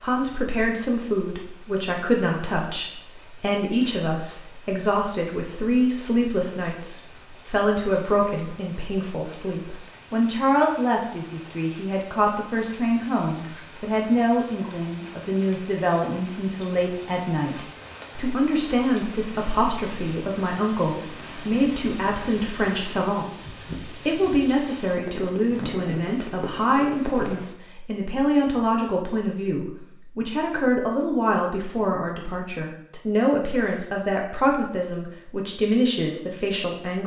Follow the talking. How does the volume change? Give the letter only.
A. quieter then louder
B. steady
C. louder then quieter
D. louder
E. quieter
B.